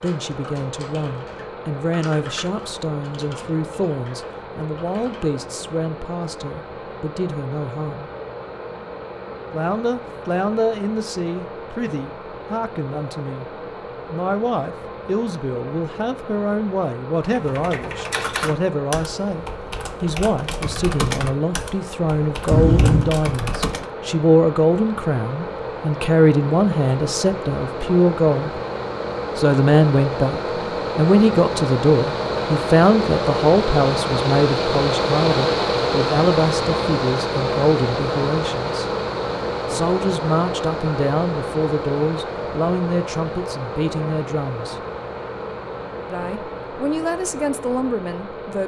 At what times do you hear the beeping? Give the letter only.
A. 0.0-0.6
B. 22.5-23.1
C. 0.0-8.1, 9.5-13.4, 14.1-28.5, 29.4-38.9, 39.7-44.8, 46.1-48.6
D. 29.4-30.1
B.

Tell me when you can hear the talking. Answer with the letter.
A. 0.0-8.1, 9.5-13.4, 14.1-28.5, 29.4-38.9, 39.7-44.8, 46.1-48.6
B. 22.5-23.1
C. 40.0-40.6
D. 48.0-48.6
A.